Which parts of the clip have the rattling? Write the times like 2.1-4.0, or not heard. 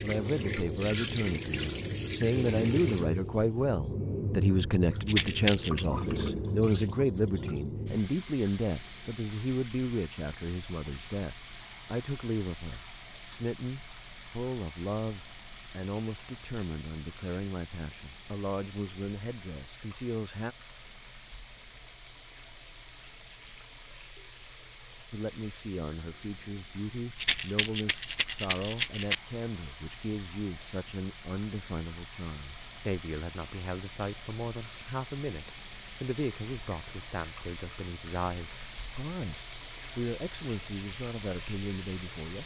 5.0-5.8, 27.1-29.1.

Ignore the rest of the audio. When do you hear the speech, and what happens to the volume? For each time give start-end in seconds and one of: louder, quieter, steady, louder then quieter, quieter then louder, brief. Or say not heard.
0.0-20.6 quieter
25.1-42.4 steady.